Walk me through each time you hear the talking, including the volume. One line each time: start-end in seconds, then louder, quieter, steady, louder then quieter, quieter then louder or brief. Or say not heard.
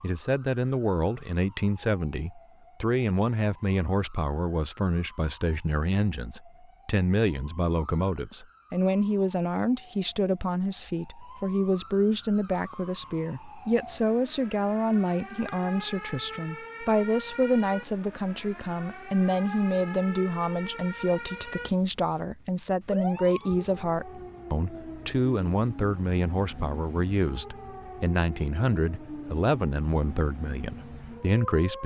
0.0-31.8 steady.